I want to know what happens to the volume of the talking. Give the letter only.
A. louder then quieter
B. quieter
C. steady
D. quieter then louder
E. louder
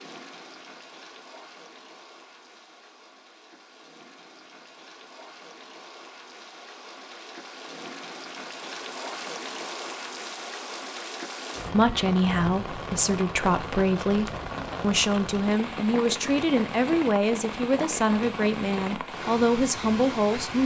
C.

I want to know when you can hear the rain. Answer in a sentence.
The rain can be heard from 0.0 to 20.6 s.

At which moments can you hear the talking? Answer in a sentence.
You can hear the talking from 11.7 to 20.6 s.